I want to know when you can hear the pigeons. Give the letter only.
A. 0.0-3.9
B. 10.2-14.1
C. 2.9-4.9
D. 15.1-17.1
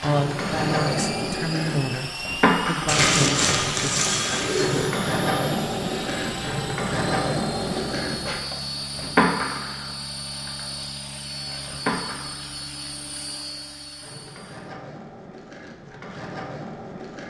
C.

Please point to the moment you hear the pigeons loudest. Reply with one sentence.
The loudest moment of the pigeons is at 3 seconds.